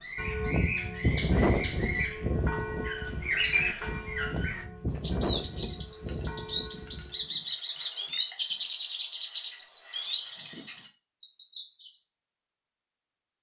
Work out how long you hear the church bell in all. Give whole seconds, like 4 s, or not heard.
7 s.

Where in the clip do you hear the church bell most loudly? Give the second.
1 s.